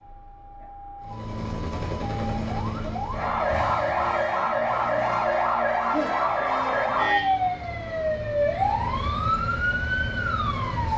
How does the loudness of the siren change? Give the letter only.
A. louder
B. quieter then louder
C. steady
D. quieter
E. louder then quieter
A.